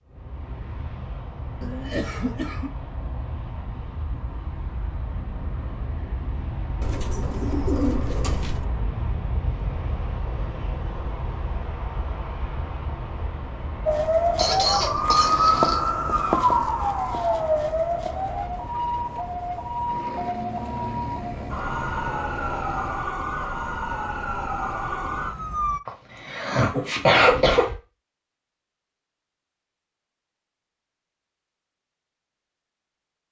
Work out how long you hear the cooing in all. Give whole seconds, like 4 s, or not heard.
2 s.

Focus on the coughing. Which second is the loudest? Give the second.
27 s.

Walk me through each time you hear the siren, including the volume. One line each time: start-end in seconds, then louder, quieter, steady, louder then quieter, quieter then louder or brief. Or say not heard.
13.8-25.8 quieter.